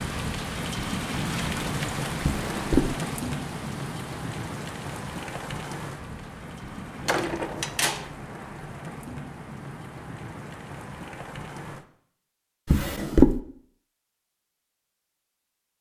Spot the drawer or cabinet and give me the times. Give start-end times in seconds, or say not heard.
2.2-3.0, 7.0-8.1, 12.7-13.4.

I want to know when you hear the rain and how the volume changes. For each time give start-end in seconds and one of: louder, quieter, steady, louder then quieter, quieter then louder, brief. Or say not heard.
0.0-11.8 quieter.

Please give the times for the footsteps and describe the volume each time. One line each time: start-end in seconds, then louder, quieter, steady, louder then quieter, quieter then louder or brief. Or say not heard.
not heard.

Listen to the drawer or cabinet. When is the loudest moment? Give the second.
13 s.